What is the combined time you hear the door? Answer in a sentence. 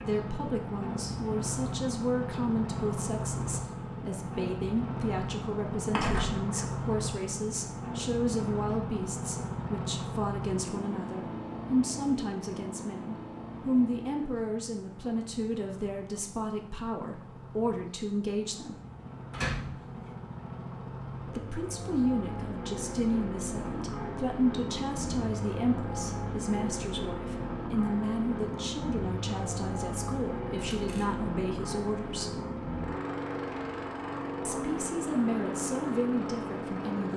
You can hear the door for 2 seconds altogether.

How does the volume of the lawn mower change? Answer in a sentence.
The volume of the lawn mower goes down, then up.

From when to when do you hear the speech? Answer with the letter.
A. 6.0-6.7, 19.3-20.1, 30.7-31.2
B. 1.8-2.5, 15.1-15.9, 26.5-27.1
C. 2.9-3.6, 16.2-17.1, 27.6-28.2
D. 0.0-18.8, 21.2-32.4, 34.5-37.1
D.